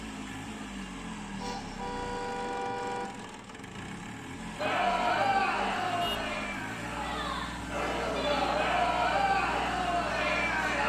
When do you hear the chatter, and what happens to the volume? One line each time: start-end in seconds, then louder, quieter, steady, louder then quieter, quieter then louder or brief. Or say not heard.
4.5-10.8 quieter then louder.